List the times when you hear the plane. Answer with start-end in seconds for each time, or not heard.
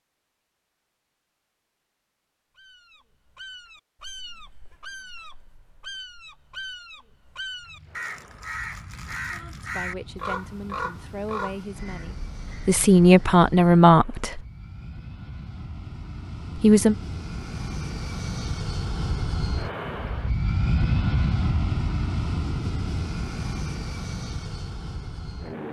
7.6-25.6.